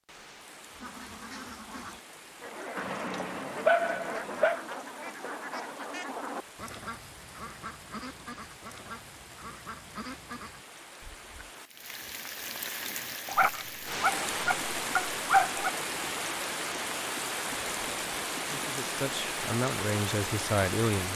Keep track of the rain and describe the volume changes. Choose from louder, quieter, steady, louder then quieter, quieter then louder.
louder.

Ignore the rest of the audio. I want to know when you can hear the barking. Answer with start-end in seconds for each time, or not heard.
2.8-4.6, 13.3-15.7.